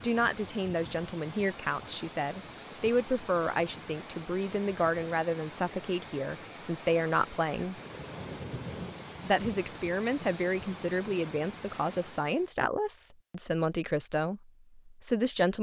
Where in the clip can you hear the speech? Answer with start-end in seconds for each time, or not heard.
0.0-7.8, 9.2-15.5.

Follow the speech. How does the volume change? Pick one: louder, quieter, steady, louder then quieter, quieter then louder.
steady.